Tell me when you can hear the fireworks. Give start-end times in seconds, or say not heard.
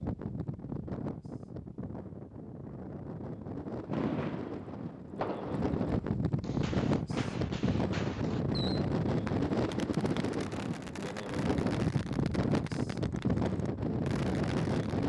3.9-15.0.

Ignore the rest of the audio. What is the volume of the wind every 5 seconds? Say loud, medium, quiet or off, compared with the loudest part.
medium, loud, loud.